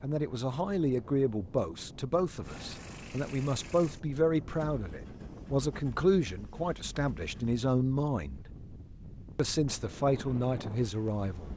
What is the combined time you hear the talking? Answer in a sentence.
You can hear the talking for 11 seconds altogether.